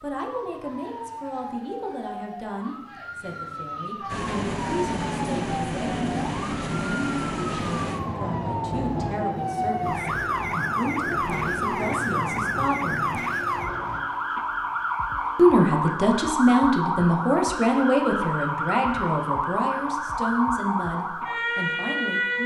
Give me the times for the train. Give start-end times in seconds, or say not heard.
4.0-14.0.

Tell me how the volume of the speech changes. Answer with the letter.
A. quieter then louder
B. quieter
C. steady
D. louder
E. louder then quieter
E.